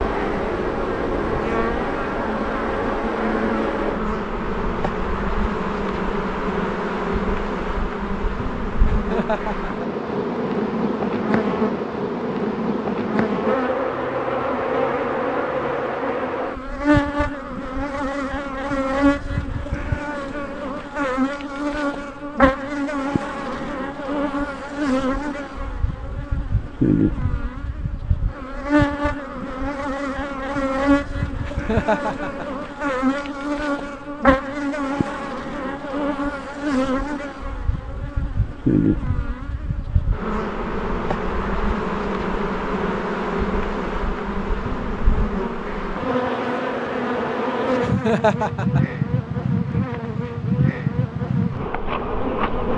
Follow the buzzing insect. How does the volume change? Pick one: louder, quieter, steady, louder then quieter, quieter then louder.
steady.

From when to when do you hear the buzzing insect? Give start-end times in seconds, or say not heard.
0.0-52.7.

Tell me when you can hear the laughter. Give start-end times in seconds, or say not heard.
8.9-10.0, 31.4-32.5, 47.8-48.8.